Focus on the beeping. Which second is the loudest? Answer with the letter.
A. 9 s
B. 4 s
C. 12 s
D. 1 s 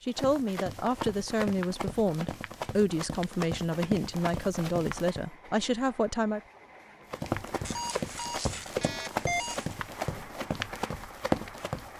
A.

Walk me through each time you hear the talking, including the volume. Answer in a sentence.
You can hear the talking from 0.0 to 6.4 s, at a steady volume.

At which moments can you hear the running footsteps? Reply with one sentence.
The running footsteps can be heard from 0.1 to 5.2 s and from 7.1 to 11.9 s.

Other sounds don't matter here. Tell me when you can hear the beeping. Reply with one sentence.
You can hear the beeping from 7.7 to 9.8 s.